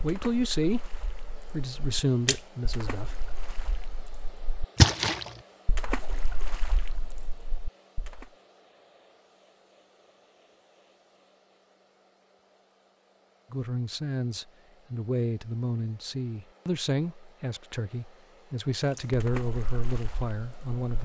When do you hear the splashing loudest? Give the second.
5 s.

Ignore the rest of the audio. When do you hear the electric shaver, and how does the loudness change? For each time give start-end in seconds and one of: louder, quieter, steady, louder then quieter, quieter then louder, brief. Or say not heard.
not heard.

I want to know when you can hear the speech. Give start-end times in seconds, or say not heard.
0.0-3.2, 13.5-21.0.